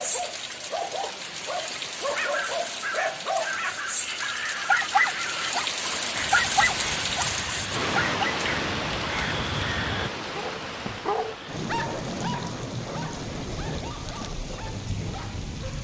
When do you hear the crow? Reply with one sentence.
You can hear the crow from 2.1 to 10.1 s.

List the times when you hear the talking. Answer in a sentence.
You can't hear the talking here.